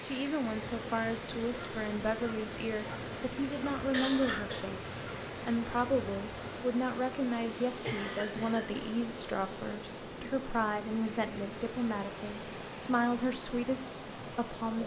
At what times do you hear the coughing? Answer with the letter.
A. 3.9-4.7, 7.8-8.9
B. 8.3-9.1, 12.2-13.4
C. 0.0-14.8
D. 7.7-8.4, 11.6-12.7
A.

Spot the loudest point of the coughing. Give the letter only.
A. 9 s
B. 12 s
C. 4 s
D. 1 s
C.